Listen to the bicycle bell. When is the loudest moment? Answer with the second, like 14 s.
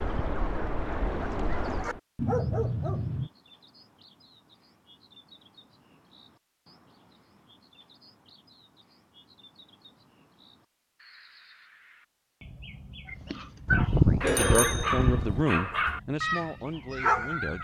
14 s.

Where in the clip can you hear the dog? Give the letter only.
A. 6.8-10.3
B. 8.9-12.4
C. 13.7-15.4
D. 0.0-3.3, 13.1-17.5
D.